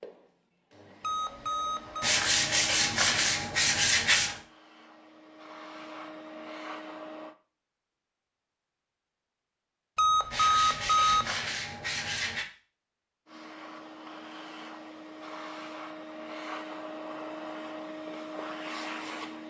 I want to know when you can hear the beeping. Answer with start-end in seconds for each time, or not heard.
1.0-2.1, 9.9-11.3.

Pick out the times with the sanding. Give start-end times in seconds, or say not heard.
2.0-4.4, 10.3-12.4.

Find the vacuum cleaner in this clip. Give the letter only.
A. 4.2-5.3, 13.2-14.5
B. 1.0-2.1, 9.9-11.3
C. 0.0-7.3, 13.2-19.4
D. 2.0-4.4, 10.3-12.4
C.